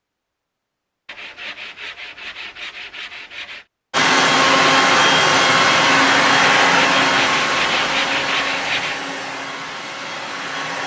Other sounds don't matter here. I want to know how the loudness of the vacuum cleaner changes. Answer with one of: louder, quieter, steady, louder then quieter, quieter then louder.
quieter.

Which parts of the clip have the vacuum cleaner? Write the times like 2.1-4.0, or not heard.
3.9-10.8.